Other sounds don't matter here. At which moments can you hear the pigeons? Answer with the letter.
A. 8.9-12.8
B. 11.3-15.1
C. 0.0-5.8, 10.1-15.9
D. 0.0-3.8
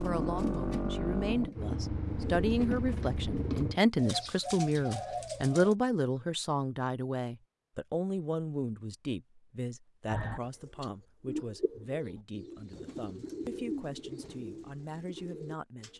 C.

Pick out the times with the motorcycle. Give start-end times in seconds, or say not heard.
0.0-3.8.